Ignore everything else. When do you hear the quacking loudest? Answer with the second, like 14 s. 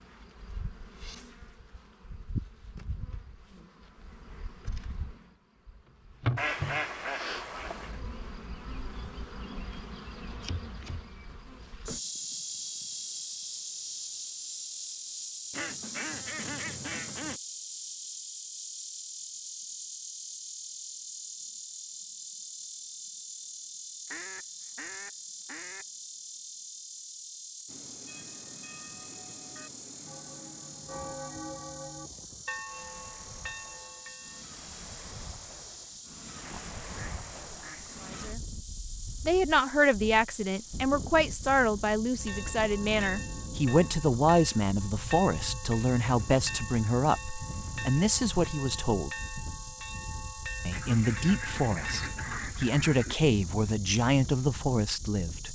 7 s.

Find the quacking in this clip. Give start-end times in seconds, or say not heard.
6.3-8.0, 15.5-17.4, 24.1-25.9, 36.5-38.1, 50.7-53.1.